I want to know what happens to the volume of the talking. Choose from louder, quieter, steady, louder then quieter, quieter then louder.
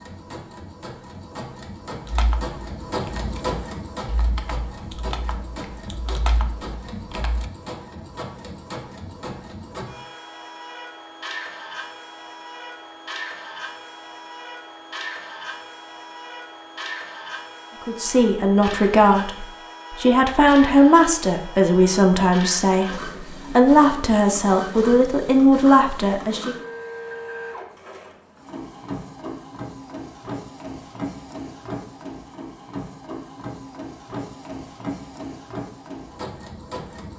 steady.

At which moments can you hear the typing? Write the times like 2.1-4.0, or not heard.
2.0-7.5.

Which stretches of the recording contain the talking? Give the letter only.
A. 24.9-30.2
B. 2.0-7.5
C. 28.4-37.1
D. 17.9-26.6
D.